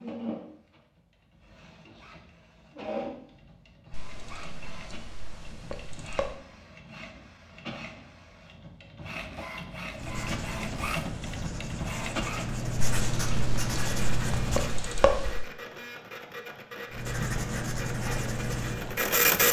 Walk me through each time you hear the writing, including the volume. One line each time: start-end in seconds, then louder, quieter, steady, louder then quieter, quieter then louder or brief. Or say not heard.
9.9-14.8 louder
16.9-19.1 brief.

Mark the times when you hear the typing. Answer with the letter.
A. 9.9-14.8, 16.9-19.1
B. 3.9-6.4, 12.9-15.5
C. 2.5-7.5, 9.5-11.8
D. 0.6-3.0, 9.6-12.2
B.